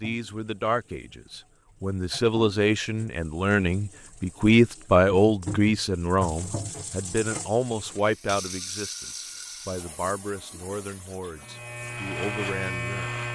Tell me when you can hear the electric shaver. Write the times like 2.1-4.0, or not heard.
11.3-13.3.